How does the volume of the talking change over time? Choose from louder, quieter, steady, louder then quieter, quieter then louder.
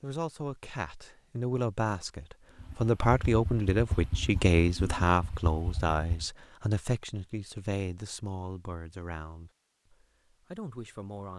louder then quieter.